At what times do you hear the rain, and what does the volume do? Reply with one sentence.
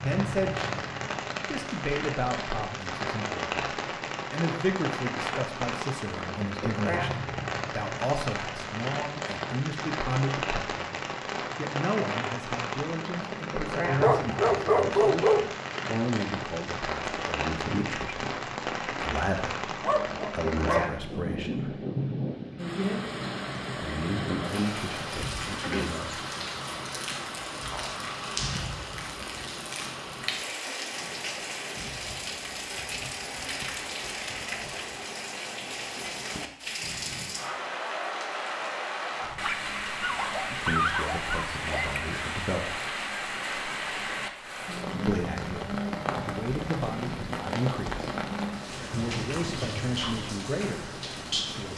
You can hear the rain from 0.0 to 51.7 s, at a steady volume.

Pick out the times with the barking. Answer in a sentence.
You can hear the barking from 14.0 to 15.6 s, from 19.8 to 21.3 s and from 39.2 to 42.0 s.